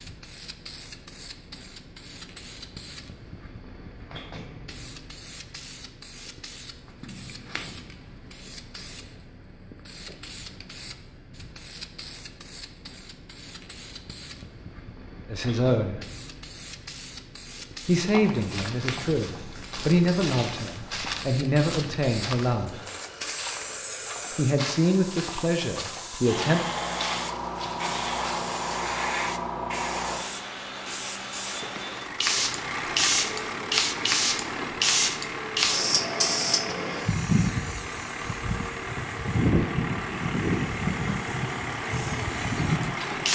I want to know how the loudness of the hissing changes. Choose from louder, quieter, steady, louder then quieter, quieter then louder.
louder.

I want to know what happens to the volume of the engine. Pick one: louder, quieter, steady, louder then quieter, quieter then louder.
steady.